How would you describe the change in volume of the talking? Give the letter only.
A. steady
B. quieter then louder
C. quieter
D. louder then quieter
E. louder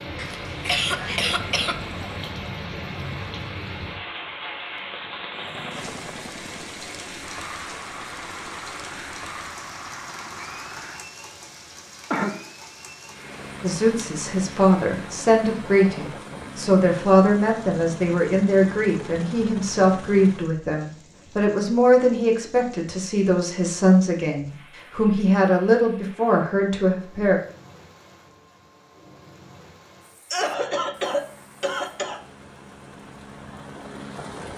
A.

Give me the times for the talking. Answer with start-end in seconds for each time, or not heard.
13.6-27.4.